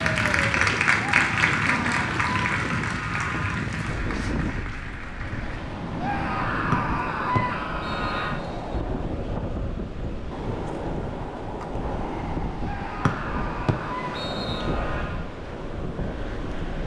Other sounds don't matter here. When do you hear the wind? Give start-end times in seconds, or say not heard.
0.0-16.8.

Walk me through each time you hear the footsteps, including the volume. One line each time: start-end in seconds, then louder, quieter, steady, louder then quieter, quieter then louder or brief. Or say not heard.
not heard.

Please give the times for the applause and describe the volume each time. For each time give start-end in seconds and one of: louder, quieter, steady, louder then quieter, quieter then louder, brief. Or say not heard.
0.0-5.6 quieter.